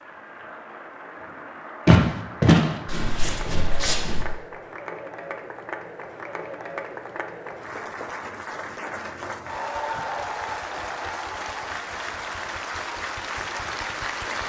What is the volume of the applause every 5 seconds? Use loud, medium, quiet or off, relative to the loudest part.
medium, loud, loud.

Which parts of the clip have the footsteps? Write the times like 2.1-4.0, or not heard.
1.9-4.2.